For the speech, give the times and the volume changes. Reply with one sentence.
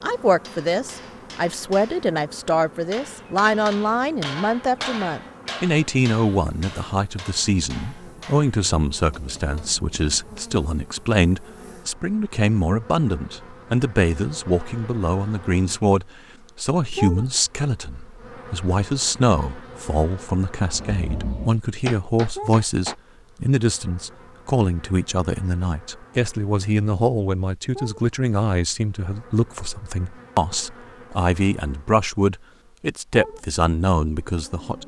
The speech can be heard from 0.0 to 34.8 s, at a steady volume.